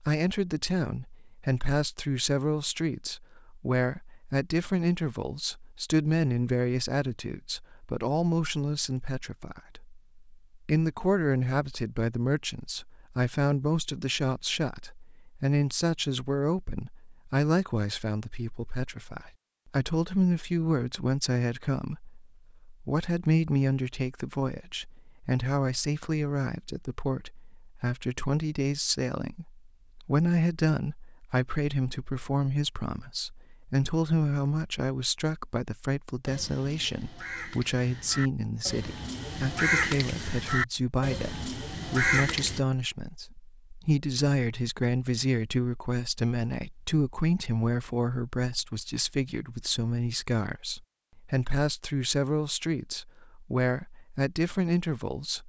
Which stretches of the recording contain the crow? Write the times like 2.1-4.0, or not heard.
36.2-42.6.